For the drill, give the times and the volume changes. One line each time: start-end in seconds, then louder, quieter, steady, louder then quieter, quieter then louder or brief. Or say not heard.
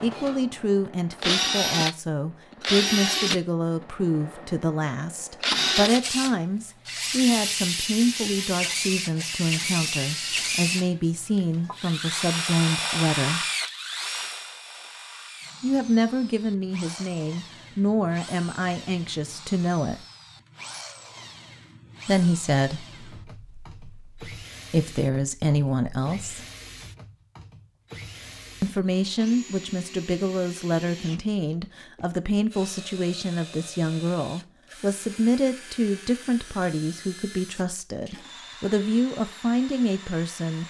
0.0-40.6 quieter.